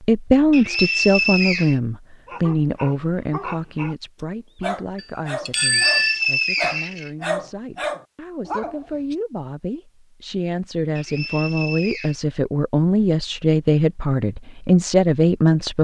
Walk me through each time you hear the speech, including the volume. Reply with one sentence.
The speech can be heard from 0.0 to 15.7 s, getting quieter then louder.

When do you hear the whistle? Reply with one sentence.
The whistle can be heard from 0.5 to 1.8 s, from 5.6 to 7.1 s and from 10.9 to 12.2 s.